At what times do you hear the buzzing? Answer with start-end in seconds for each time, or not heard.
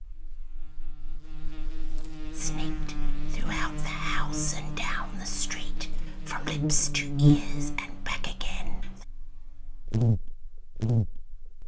0.0-11.6.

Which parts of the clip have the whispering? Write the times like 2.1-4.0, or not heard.
2.3-9.0.